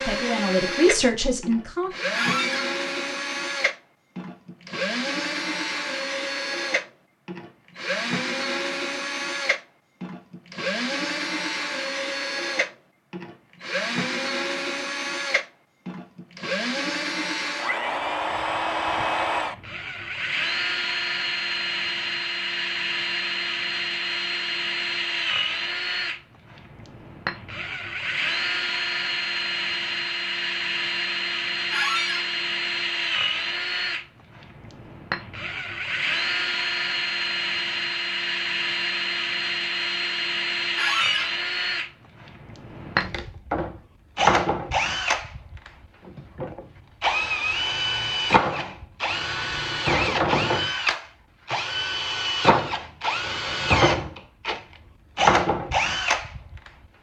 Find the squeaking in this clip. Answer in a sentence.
The squeaking can be heard from 2.1 to 2.6 s, from 31.7 to 32.2 s and from 40.8 to 41.3 s.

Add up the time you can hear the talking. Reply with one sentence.
You can hear the talking for 2 seconds altogether.